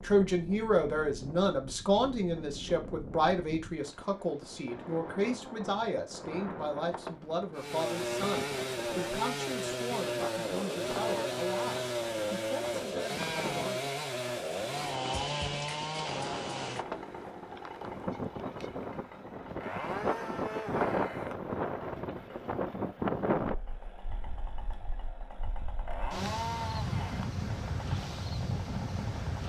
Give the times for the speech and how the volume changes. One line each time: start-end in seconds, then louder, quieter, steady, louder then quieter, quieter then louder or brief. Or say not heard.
0.0-13.9 quieter.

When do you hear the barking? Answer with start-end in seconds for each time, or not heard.
not heard.